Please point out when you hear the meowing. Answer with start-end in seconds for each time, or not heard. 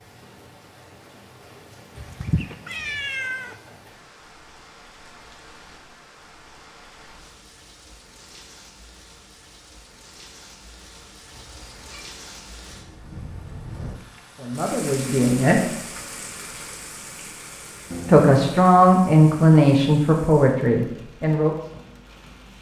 1.9-3.5, 11.3-12.1, 17.9-18.6.